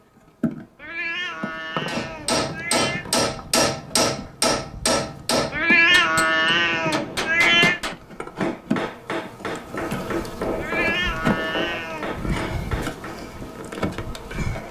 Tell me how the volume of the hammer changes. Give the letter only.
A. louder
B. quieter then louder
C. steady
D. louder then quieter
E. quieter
E.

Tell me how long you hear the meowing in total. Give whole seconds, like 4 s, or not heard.
6 s.